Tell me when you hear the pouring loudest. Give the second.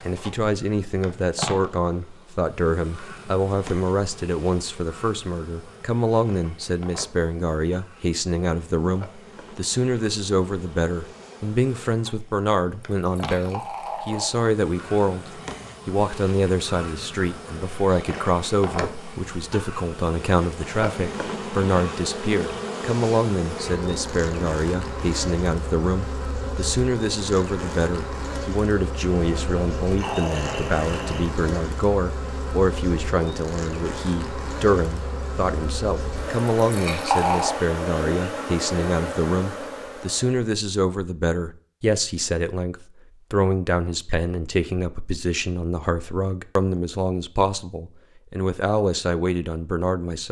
37 s.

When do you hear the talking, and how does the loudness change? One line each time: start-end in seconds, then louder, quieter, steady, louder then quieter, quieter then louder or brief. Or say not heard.
0.0-50.2 steady.